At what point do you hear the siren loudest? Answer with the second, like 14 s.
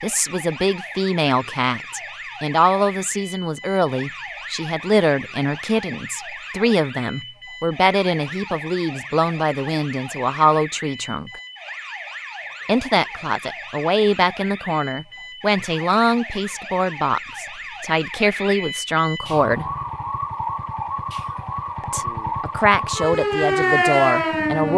24 s.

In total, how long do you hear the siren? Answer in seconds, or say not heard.
25 s.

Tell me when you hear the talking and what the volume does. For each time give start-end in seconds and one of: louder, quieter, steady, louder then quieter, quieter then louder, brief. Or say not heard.
0.0-11.3 steady
12.7-19.6 steady
21.8-24.7 brief.